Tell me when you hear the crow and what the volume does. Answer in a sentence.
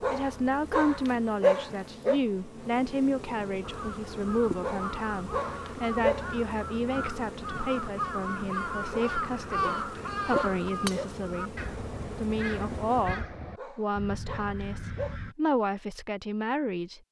The crow can be heard from 3.6 to 15.3 s, getting louder then quieter.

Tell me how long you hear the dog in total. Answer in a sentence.
The dog can be heard for 8 seconds in total.